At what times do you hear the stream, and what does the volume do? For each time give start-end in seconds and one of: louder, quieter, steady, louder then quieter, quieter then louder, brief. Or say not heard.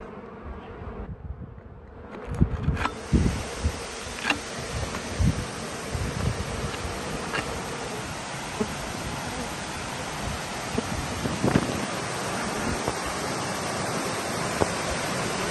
2.8-15.4 louder.